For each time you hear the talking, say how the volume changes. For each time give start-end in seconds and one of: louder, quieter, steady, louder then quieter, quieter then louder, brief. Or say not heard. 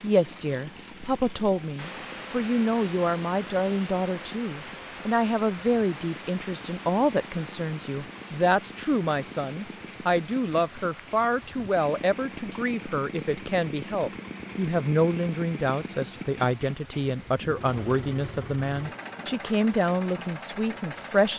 0.0-21.3 steady.